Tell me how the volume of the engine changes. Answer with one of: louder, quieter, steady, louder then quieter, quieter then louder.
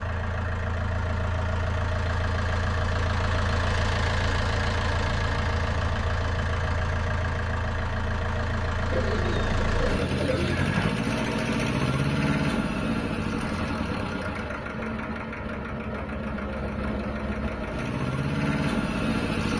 steady.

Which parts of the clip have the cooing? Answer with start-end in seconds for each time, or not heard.
8.9-10.9.